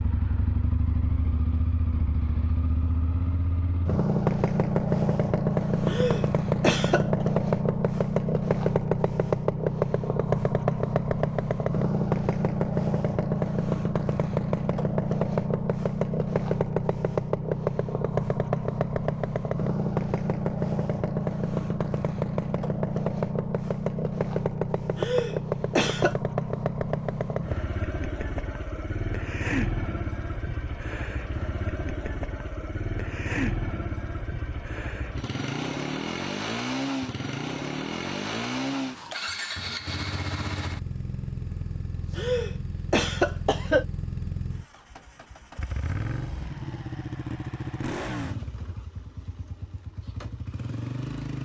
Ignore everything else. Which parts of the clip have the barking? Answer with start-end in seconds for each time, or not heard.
not heard.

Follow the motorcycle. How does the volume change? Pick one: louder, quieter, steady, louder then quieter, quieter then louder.
quieter.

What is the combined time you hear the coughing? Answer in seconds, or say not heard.
4 s.